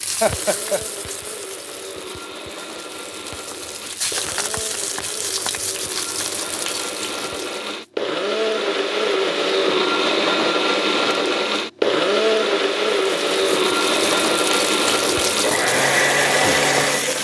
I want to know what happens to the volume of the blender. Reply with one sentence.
The volume of the blender goes up.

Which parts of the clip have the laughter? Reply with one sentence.
The laughter can be heard from 0.2 to 0.8 s.